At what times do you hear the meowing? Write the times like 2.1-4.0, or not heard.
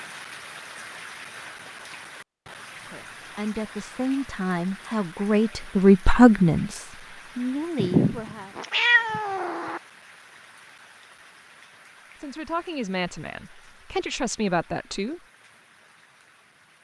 7.8-9.8.